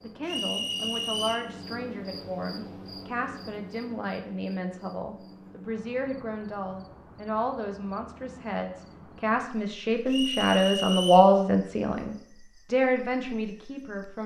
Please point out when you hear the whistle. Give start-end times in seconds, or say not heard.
0.2-1.5, 10.1-11.3.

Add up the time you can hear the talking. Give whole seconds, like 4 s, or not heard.
14 s.